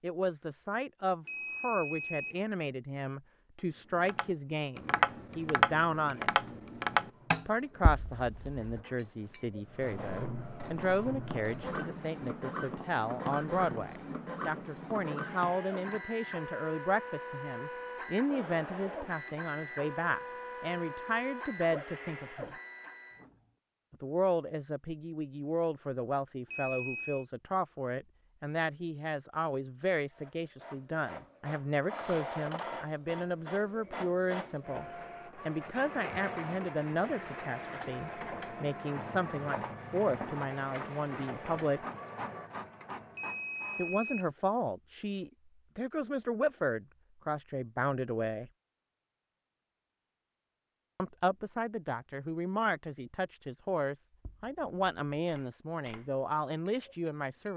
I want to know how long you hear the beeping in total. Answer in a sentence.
The beeping can be heard for 3 seconds in total.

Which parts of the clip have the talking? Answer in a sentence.
The talking can be heard from 0.0 to 6.3 s, from 7.5 to 22.6 s, from 23.9 to 41.8 s, from 43.8 to 48.5 s and from 51.0 to 57.5 s.